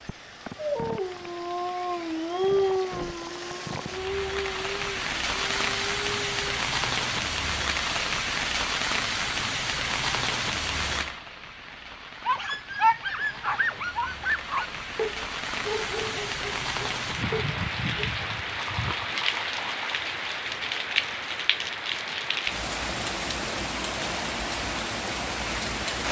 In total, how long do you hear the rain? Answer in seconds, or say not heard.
26 s.